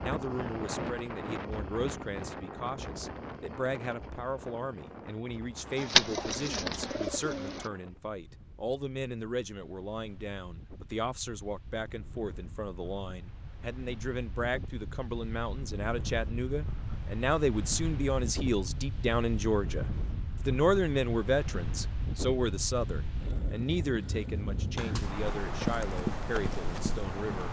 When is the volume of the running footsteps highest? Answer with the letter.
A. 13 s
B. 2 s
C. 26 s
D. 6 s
C.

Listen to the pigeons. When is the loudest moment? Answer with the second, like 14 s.
6 s.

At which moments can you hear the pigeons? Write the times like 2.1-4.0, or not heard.
5.8-7.7.